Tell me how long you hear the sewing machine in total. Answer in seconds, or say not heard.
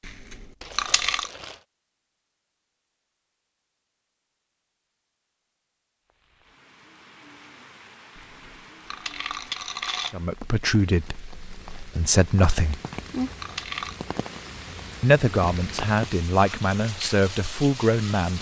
not heard.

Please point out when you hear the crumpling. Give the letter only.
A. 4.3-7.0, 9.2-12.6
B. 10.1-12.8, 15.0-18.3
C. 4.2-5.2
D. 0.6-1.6
D.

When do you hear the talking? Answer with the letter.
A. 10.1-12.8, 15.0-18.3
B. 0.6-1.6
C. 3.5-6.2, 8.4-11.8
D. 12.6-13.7
A.